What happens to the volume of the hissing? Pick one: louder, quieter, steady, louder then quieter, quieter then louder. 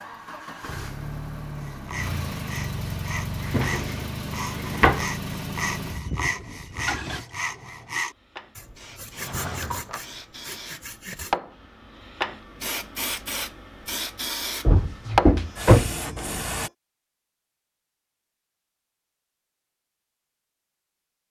louder.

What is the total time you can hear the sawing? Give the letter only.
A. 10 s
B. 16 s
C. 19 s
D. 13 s
A.